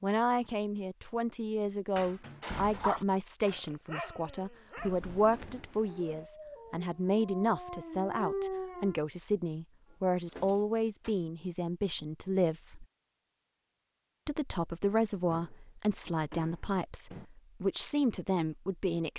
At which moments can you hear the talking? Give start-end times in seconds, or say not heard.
0.0-12.8, 14.2-19.1.